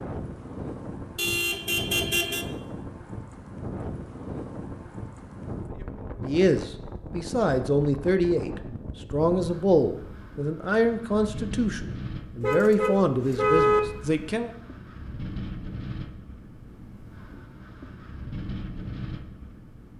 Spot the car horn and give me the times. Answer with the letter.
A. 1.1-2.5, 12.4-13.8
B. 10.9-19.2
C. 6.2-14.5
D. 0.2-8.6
A.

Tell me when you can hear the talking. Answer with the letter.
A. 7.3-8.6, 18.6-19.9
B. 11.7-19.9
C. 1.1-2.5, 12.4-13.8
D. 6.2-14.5
D.